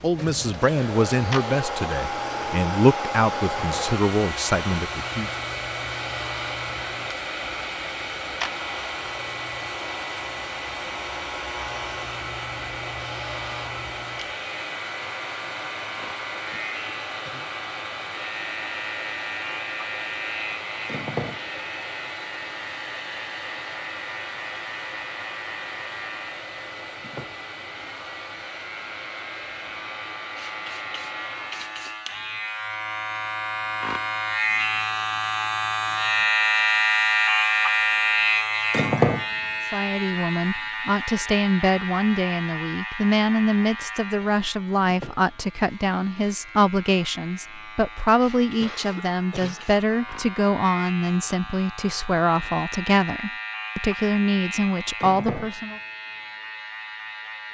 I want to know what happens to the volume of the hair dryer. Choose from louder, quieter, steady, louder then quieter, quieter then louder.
quieter.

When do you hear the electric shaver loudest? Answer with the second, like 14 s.
37 s.